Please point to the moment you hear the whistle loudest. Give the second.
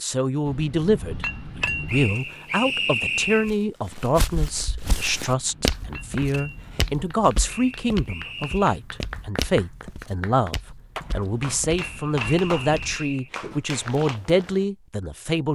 3 s.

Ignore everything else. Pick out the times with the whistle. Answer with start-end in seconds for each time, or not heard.
1.9-3.5, 7.5-8.8, 11.8-13.3.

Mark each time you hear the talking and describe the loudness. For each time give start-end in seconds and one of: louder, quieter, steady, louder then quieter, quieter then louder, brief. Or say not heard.
0.0-15.4 steady.